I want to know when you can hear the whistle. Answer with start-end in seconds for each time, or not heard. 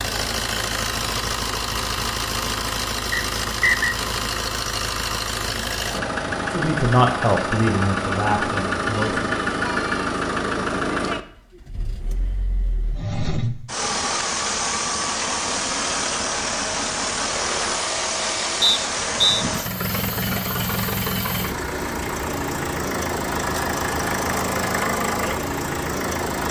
3.1-4.0, 18.6-19.4.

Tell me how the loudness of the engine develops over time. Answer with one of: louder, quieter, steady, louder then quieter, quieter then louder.
steady.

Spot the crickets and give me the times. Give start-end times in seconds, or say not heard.
not heard.